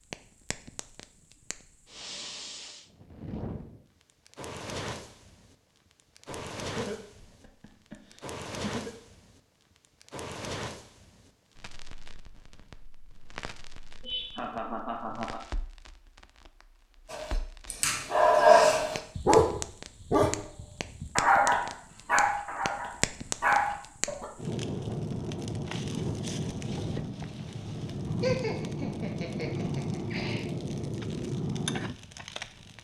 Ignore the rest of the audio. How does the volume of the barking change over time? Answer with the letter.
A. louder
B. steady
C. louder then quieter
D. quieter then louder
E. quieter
E.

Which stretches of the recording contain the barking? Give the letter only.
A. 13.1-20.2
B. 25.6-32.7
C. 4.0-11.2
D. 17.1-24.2
D.